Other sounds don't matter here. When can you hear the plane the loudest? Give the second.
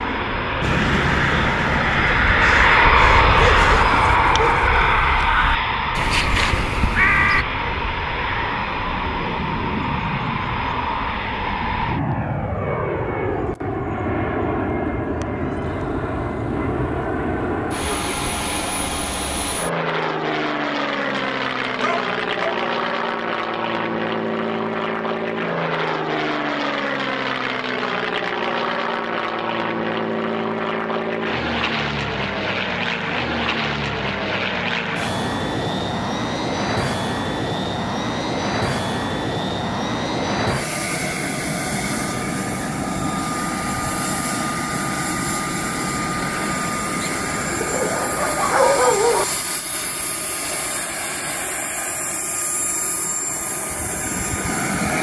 3 s.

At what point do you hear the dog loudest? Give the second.
49 s.